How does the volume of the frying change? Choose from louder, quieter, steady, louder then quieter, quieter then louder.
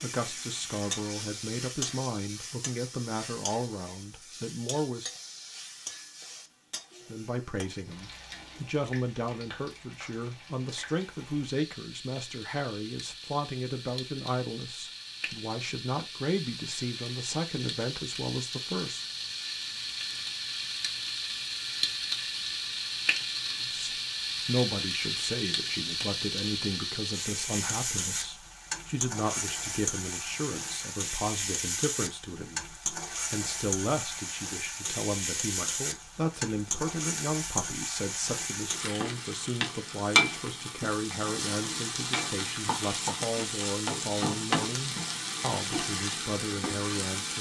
louder.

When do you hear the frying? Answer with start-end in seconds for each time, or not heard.
0.0-47.3.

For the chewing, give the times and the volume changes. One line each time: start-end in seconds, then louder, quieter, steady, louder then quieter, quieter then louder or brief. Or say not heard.
not heard.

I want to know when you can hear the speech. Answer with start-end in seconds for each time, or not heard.
0.0-5.1, 7.0-19.1, 23.6-47.3.